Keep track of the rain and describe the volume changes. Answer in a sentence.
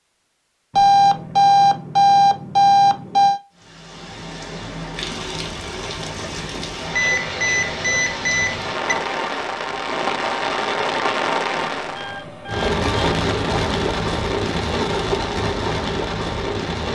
The volume of the rain goes up.